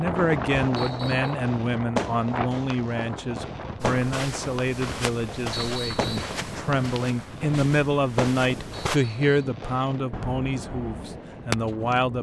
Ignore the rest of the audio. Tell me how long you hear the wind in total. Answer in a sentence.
The wind can be heard for 12 seconds in total.